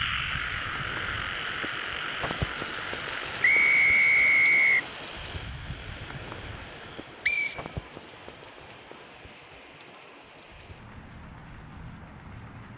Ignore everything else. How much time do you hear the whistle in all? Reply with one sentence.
You can hear the whistle for 2 seconds altogether.